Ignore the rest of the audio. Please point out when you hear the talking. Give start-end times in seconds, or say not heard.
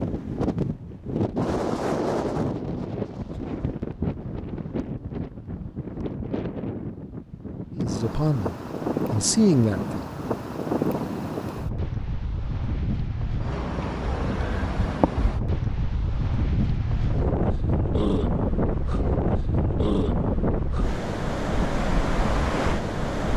7.8-10.1.